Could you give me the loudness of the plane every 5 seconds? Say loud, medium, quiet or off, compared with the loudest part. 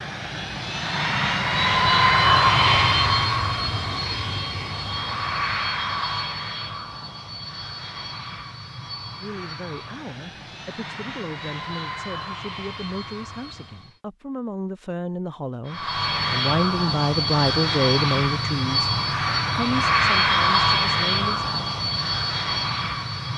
loud, medium, quiet, loud, loud.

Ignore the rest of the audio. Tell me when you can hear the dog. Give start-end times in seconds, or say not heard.
not heard.